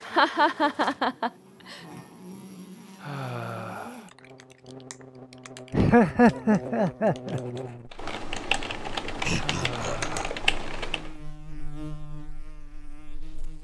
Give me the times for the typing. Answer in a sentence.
You can hear the typing from 4.0 to 11.1 s.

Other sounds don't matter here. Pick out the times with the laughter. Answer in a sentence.
You can hear the laughter from 0.1 to 1.8 s, from 5.7 to 7.4 s and from 9.2 to 10.3 s.